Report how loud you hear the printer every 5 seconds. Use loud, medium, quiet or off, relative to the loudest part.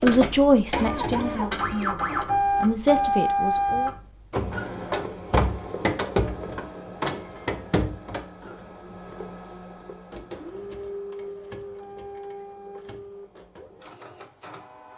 loud, medium, quiet.